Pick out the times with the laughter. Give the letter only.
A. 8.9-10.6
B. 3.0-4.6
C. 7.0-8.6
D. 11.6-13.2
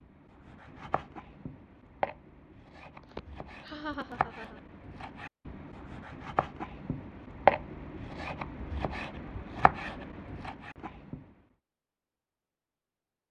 B.